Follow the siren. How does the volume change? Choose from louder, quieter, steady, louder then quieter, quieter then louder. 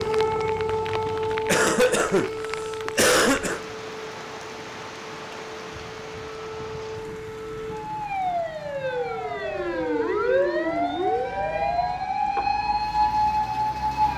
quieter then louder.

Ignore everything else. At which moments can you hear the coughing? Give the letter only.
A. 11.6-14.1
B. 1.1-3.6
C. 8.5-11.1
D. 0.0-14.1
B.